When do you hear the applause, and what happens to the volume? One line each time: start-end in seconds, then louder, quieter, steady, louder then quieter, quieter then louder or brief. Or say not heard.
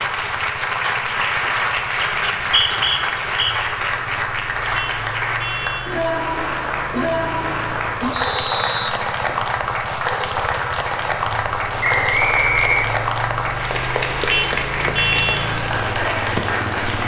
0.0-17.0 steady.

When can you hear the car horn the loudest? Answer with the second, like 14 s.
15 s.